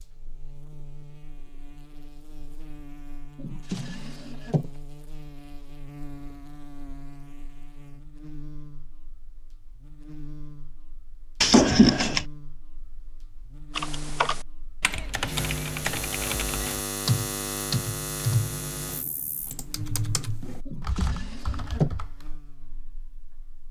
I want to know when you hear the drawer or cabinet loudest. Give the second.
12 s.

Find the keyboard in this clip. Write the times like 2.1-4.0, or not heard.
13.7-22.3.